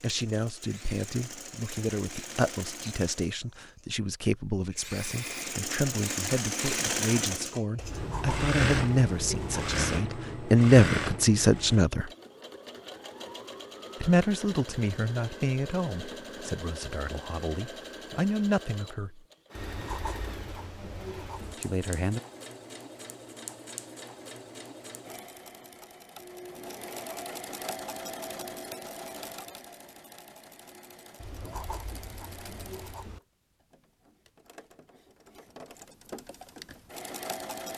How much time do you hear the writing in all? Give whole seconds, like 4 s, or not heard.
6 s.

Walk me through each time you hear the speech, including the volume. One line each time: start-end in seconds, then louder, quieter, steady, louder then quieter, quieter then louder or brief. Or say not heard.
0.0-12.1 louder
14.0-19.2 quieter then louder
21.6-22.2 brief.